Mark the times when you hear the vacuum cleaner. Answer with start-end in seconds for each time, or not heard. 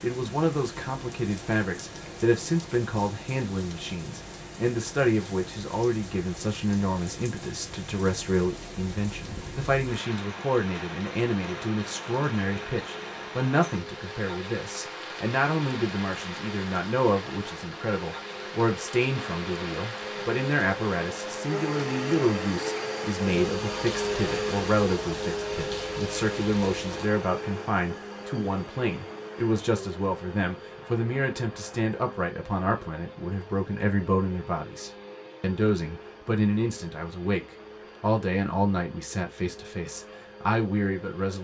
11.4-41.3.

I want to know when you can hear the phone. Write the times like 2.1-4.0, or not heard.
not heard.